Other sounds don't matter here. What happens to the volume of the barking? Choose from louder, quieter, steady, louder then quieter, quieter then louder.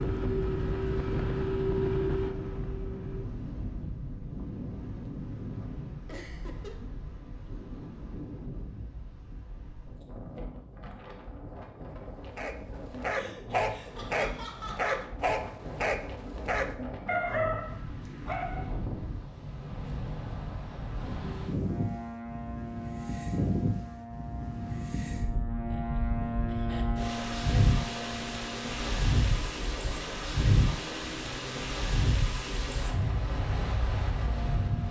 steady.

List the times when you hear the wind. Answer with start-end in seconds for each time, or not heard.
0.0-34.8.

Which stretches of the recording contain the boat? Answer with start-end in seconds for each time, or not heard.
0.0-3.2, 21.2-34.8.